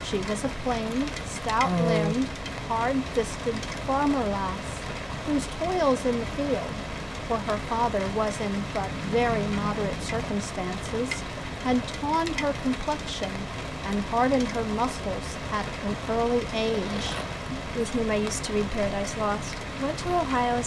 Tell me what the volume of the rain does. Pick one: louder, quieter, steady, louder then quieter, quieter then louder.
steady.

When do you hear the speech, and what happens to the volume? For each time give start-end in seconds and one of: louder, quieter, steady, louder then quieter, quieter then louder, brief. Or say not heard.
0.0-20.6 steady.